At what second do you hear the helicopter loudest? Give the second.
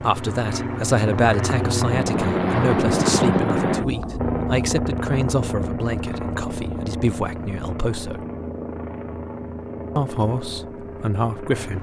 3 s.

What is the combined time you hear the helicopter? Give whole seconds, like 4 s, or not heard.
12 s.